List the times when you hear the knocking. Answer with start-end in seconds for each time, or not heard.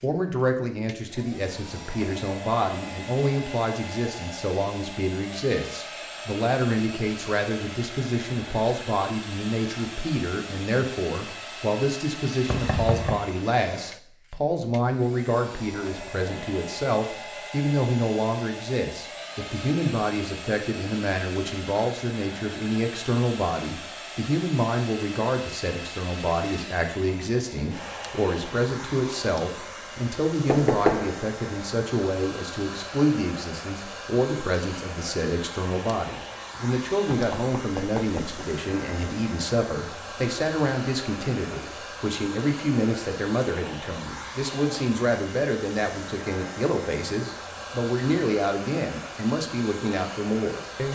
12.4-13.2, 30.4-31.1, 37.1-38.5.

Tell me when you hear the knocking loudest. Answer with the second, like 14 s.
31 s.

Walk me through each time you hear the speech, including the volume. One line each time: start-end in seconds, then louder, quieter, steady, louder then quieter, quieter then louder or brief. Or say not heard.
0.0-50.8 steady.